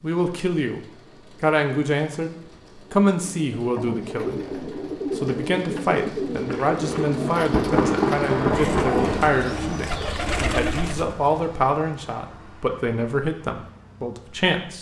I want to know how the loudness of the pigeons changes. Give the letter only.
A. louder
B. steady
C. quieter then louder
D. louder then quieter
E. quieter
B.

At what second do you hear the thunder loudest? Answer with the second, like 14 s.
8 s.